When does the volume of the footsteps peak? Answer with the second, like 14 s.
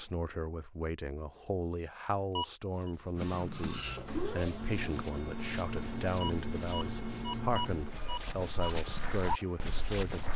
9 s.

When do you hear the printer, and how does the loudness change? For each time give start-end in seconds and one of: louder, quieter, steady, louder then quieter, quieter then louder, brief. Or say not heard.
3.1-10.3 quieter.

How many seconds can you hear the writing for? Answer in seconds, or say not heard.
not heard.